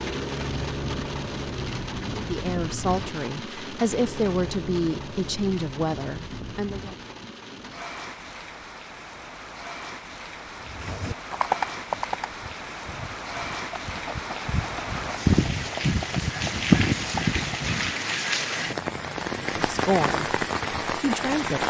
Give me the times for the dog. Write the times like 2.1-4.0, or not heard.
not heard.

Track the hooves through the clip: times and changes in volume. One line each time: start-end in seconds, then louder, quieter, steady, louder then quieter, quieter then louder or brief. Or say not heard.
10.7-17.9 quieter then louder.